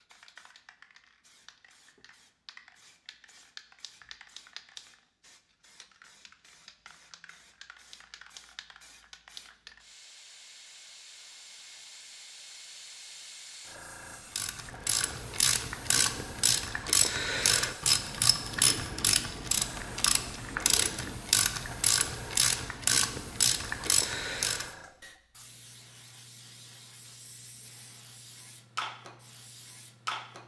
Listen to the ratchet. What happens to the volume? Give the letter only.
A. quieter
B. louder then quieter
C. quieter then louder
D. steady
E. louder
D.